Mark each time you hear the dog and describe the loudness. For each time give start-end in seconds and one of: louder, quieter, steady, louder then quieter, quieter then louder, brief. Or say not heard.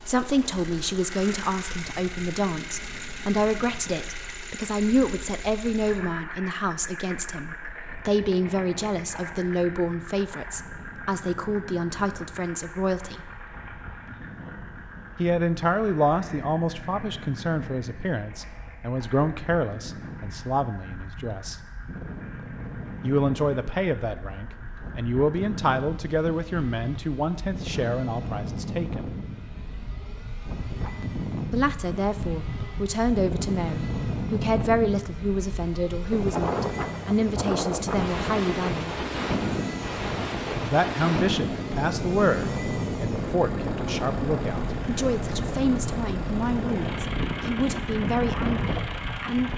not heard.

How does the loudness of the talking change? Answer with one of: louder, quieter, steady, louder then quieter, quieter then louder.
steady.